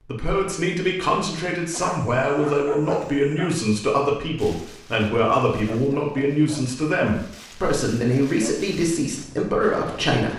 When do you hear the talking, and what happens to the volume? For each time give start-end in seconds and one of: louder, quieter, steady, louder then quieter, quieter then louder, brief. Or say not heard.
0.1-10.3 steady.